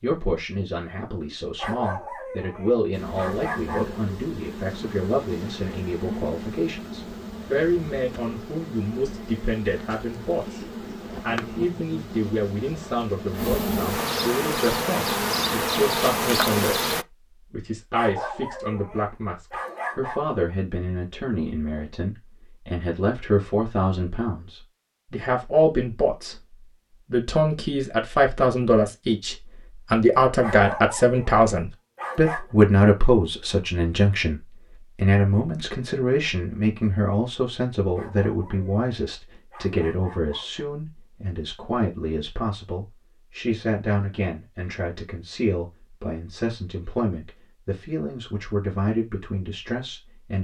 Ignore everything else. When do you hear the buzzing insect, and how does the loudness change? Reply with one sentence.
You can hear the buzzing insect from 2.9 to 17.1 s, getting louder.